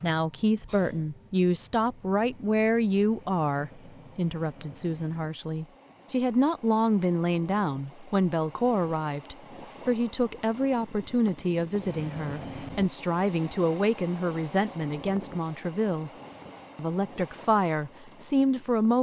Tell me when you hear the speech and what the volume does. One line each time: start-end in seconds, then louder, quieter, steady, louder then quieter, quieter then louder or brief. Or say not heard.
0.0-16.1 steady
16.8-18.9 brief.